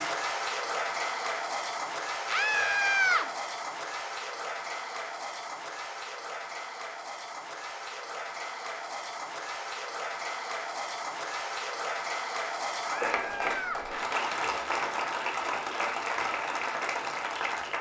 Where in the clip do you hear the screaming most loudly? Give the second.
3 s.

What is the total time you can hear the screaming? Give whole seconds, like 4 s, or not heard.
2 s.